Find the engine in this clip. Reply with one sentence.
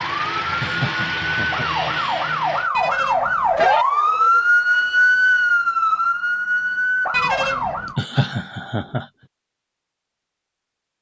The engine can be heard from 0.0 to 2.7 s.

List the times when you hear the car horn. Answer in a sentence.
The car horn can be heard from 2.8 to 3.9 s and from 7.1 to 7.9 s.